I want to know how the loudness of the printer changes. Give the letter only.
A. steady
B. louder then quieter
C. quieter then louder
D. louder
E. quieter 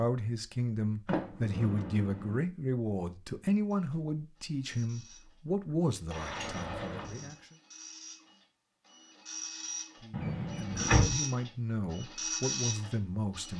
D.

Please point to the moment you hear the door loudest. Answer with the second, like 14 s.
11 s.